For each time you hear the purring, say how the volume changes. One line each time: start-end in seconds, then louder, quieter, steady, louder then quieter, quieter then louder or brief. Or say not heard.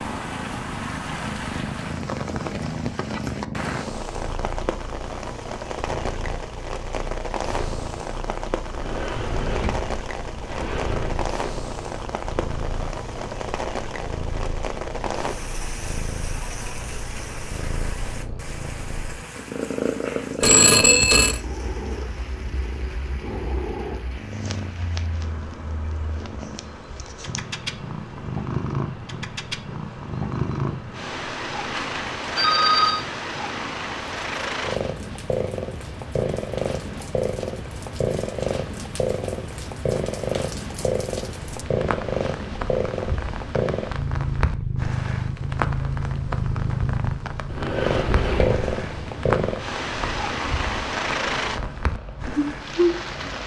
0.0-53.4 louder.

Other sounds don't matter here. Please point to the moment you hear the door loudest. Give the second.
48 s.